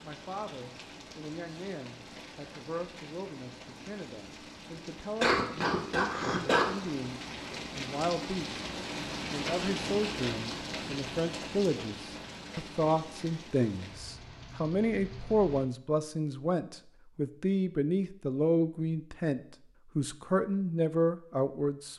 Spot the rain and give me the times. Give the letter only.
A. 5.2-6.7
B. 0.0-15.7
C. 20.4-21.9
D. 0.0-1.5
B.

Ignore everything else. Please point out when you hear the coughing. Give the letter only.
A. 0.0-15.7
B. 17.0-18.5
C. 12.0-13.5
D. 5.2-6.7
D.